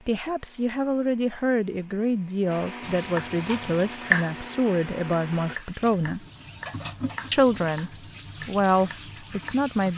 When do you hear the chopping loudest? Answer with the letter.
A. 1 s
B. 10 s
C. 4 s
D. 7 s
C.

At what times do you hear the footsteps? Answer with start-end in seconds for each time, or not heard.
not heard.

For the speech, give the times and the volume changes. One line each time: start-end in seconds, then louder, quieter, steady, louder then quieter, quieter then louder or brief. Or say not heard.
0.1-6.2 steady
7.3-9.9 brief.